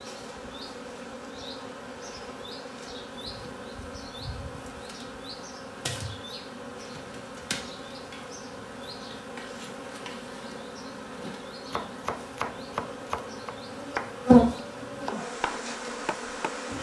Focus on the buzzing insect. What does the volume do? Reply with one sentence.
The volume of the buzzing insect goes up.